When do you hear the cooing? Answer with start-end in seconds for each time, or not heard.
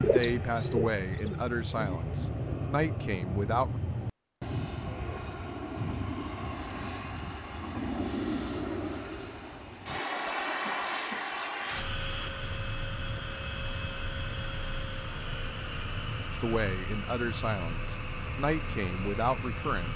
0.0-2.0.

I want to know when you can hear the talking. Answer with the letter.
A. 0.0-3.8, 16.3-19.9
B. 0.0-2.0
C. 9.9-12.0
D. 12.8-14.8
A.